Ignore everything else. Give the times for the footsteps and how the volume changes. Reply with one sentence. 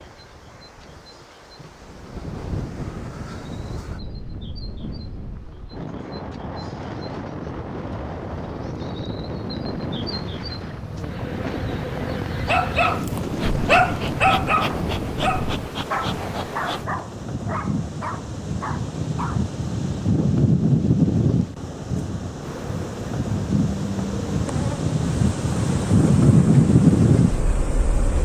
You can't hear the footsteps here.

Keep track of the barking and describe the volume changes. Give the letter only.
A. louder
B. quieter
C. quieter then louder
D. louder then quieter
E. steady
B.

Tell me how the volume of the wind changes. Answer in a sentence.
The volume of the wind goes up.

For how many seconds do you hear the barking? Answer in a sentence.
The barking can be heard for 7 seconds in total.